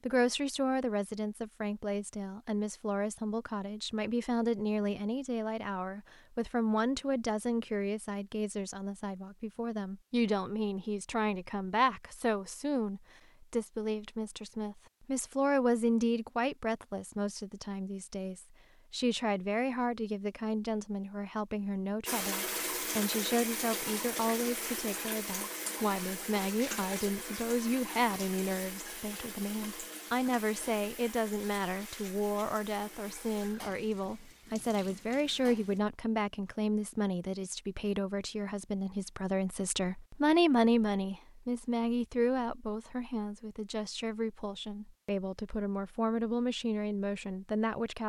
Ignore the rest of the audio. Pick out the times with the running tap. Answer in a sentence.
The running tap can be heard from 22.1 to 35.8 s.